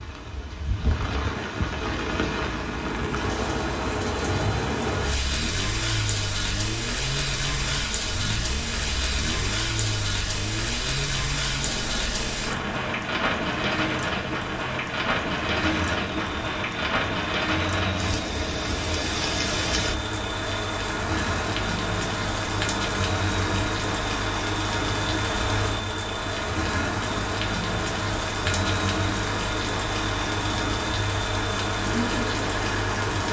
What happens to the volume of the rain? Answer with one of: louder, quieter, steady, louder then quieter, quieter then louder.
steady.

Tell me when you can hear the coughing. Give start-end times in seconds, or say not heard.
not heard.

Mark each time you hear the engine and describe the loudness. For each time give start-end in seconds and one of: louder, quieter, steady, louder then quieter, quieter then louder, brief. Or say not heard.
1.8-33.2 steady.